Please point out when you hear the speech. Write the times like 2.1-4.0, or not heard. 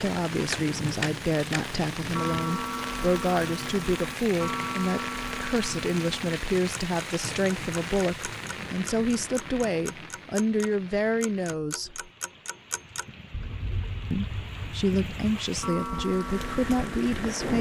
0.0-12.1, 14.1-17.5.